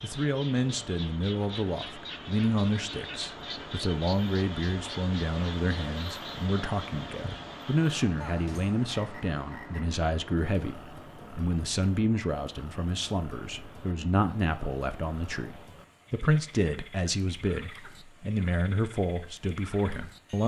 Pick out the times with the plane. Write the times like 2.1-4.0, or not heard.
not heard.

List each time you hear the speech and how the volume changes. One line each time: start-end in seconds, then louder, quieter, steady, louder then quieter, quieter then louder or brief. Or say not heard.
0.0-20.4 steady.